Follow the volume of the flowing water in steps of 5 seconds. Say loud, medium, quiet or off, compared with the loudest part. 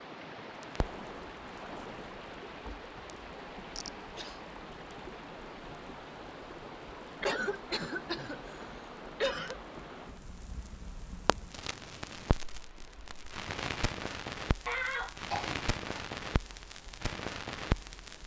loud, loud, medium, quiet.